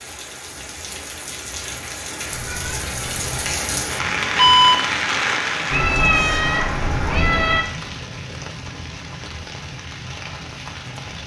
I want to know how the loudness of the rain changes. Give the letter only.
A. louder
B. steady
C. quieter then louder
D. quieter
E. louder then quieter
E.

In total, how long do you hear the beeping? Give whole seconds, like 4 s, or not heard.
2 s.